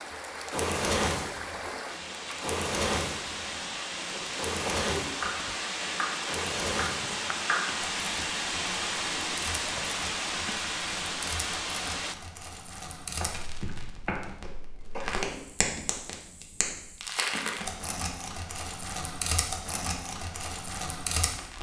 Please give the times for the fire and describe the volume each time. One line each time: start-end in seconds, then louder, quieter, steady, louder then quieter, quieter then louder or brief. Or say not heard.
0.1-21.5 quieter then louder.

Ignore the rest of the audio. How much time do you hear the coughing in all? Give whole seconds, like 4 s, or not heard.
2 s.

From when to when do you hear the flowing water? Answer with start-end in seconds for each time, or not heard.
0.0-12.2.